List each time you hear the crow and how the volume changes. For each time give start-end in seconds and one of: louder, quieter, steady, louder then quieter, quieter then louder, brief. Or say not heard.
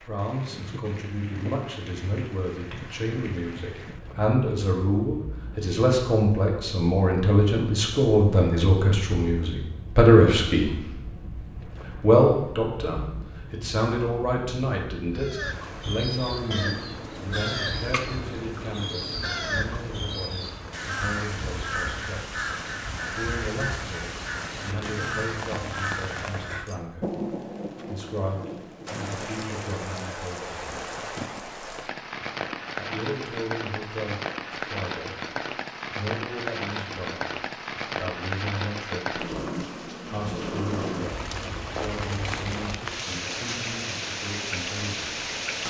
15.2-26.6 steady.